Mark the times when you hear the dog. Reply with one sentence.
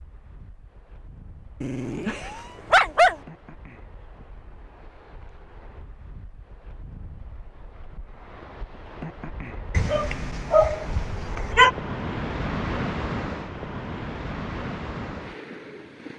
The dog can be heard from 1.6 to 3.1 s and from 9.7 to 11.7 s.